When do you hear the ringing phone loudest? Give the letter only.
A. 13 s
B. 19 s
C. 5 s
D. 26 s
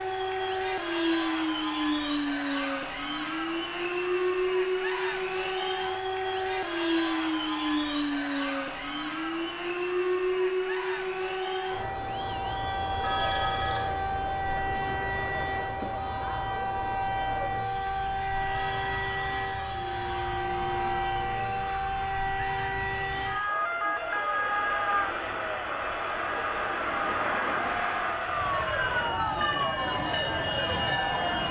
A.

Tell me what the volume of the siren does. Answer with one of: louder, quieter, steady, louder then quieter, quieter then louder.
steady.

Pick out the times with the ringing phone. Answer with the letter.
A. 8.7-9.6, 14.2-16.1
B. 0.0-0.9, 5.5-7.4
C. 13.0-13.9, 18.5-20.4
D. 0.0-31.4
C.